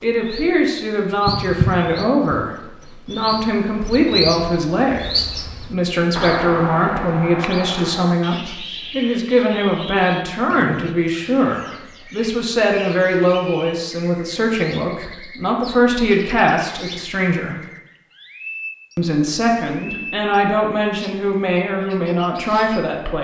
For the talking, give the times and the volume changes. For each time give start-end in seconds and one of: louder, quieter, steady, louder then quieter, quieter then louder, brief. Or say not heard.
0.0-17.6 steady
18.9-23.2 steady.